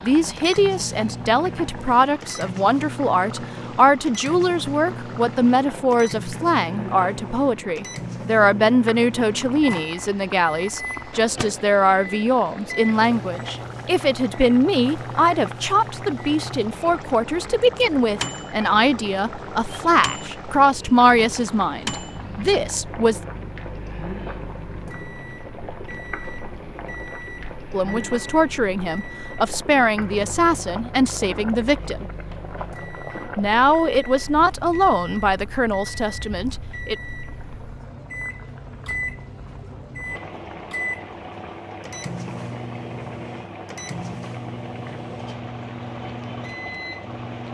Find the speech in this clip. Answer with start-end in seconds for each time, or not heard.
0.0-23.2, 27.7-32.0, 33.4-37.0.